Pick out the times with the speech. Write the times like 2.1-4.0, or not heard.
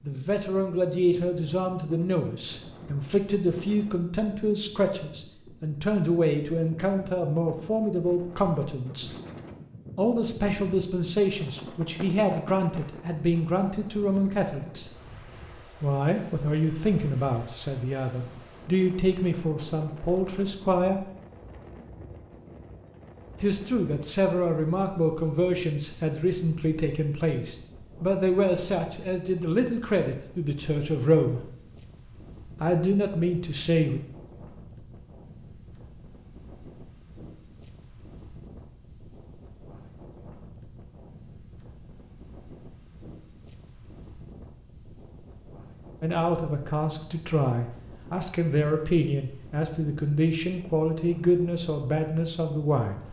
0.0-9.1, 9.9-14.9, 15.8-21.1, 23.4-31.4, 32.6-34.0, 46.0-53.0.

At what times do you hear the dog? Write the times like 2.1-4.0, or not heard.
not heard.